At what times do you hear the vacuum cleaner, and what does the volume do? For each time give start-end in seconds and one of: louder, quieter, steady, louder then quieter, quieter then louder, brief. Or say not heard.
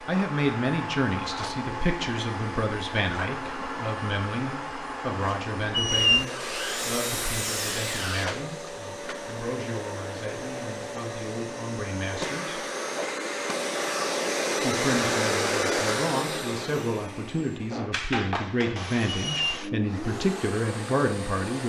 0.0-21.6 louder then quieter.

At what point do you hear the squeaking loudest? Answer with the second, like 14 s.
6 s.